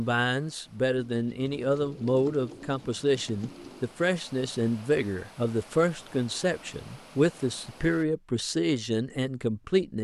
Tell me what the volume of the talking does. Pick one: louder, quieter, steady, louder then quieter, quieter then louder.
steady.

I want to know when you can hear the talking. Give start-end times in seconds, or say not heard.
0.0-10.0.